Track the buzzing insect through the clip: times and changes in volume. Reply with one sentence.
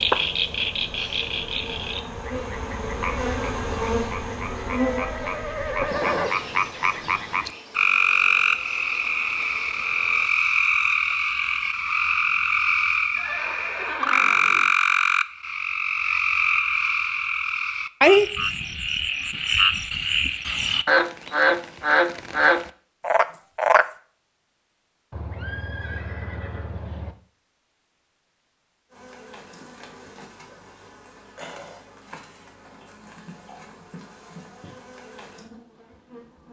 You can hear the buzzing insect from 0.2 to 10.3 s, getting louder then quieter; and from 28.9 to 36.4 s, at a steady volume.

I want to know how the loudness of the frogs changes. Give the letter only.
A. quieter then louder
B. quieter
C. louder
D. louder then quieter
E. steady
C.